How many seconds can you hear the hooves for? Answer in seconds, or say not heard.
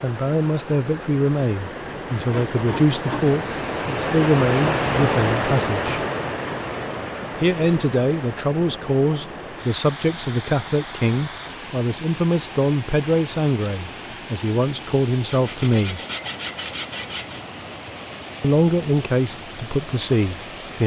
not heard.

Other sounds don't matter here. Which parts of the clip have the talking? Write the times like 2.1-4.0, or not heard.
0.0-6.0, 7.3-16.0, 18.4-20.8.